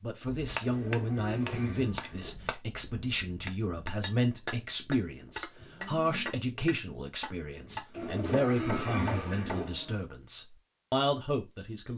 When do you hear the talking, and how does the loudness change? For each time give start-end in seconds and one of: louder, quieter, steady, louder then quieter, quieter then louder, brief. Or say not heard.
0.0-11.9 steady.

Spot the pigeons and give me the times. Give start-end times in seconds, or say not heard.
0.6-2.4, 7.9-9.7.